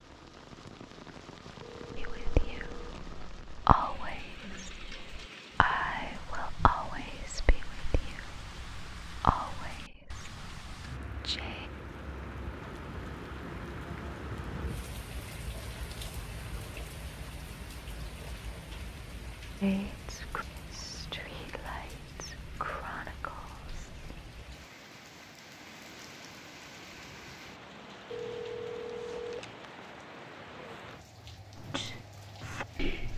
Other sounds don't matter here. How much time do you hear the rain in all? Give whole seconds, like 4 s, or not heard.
33 s.